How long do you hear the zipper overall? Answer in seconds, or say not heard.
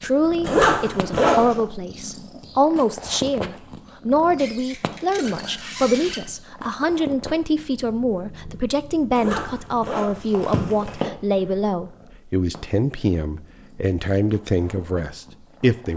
3 s.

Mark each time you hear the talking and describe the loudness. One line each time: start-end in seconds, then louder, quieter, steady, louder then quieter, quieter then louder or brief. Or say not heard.
0.0-15.9 steady.